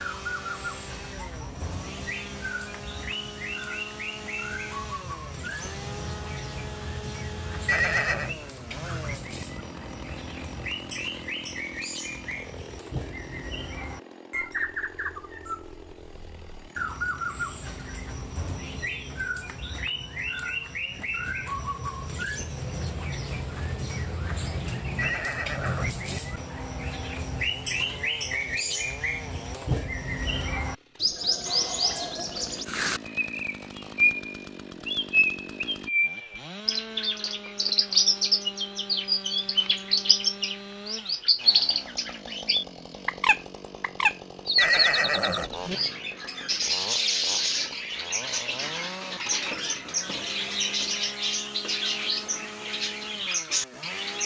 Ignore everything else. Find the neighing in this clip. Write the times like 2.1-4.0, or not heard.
7.7-8.3, 24.9-25.9, 44.5-45.8.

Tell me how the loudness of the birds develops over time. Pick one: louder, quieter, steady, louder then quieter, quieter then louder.
louder.